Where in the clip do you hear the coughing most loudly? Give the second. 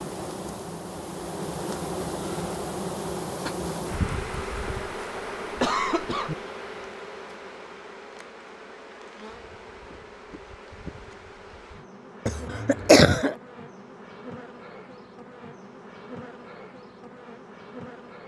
13 s.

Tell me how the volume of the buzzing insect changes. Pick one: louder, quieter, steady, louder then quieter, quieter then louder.
quieter.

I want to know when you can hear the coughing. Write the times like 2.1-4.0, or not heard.
4.7-6.3, 12.2-13.3.